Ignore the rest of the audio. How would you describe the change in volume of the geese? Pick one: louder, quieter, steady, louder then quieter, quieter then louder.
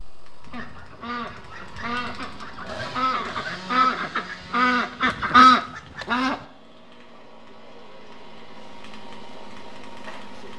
louder.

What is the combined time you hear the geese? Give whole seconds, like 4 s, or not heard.
6 s.